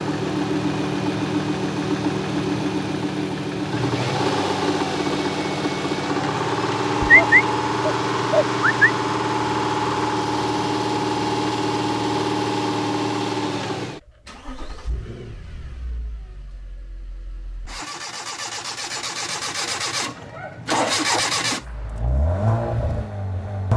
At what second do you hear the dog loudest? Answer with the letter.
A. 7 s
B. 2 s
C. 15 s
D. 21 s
A.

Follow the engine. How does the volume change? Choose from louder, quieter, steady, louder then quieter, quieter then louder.
quieter then louder.